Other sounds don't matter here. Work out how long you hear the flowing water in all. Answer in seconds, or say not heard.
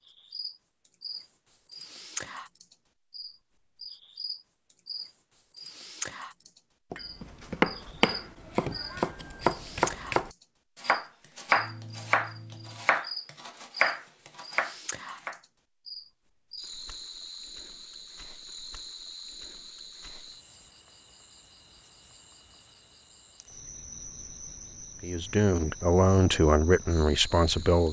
not heard.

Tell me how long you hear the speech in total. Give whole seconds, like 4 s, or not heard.
3 s.